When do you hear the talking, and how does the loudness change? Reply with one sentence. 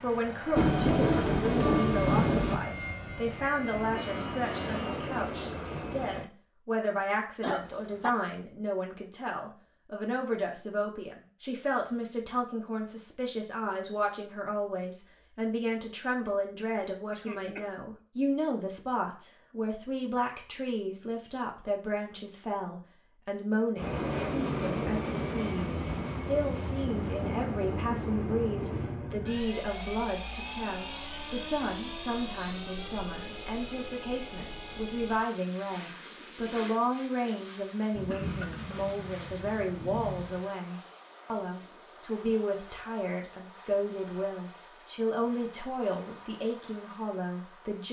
You can hear the talking from 0.0 to 47.8 s, at a steady volume.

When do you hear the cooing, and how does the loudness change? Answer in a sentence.
You can't hear the cooing here.